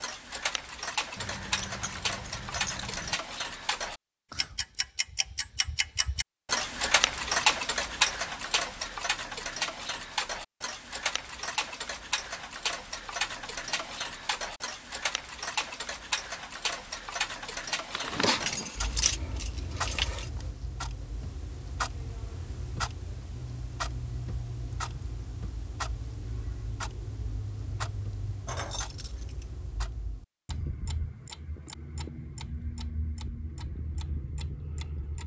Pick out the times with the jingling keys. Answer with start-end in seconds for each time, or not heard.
1.1-3.1, 17.9-20.3, 28.4-29.6.